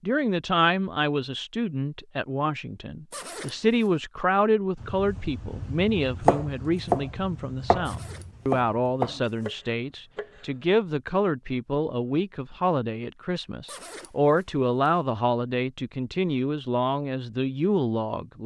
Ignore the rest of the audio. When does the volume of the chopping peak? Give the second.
6 s.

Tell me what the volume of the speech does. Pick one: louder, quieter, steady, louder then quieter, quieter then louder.
steady.